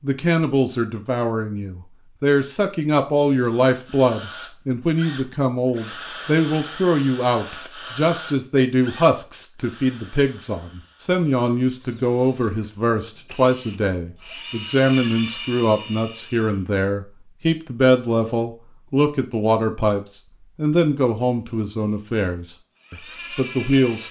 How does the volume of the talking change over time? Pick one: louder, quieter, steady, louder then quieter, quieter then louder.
steady.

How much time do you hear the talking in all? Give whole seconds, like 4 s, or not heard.
24 s.